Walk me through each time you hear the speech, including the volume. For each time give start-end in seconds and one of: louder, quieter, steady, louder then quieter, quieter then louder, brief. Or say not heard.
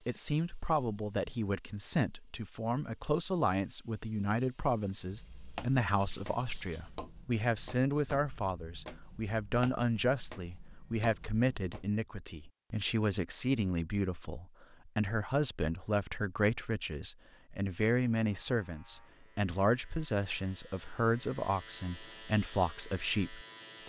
0.1-23.8 steady.